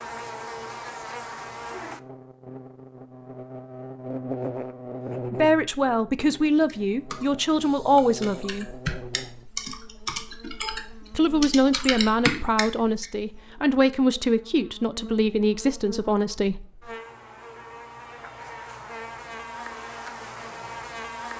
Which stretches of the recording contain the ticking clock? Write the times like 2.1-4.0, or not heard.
not heard.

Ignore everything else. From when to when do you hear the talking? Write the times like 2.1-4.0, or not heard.
5.3-8.8, 11.1-16.6.